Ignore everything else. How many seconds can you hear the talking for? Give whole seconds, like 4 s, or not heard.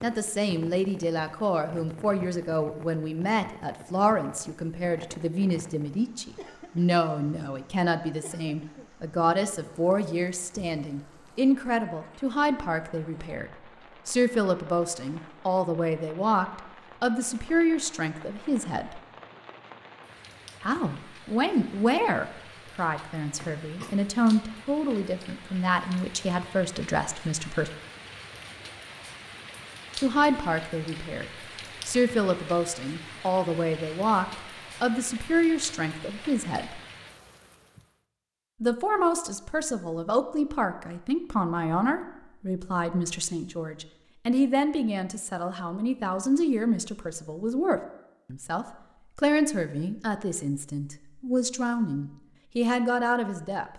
48 s.